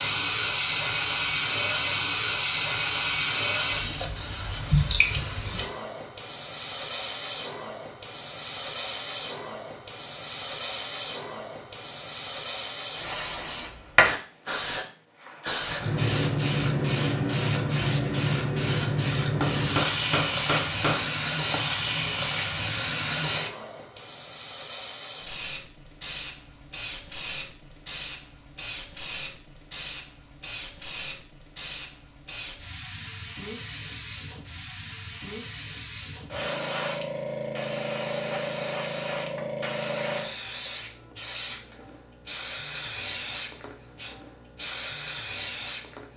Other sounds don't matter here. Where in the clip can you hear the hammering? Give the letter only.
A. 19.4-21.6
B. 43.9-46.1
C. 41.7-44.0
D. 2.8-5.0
A.